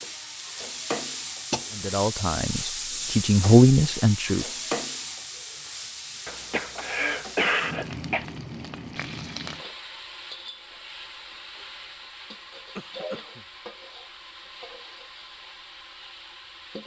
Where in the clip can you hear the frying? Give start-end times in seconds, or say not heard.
0.0-16.8.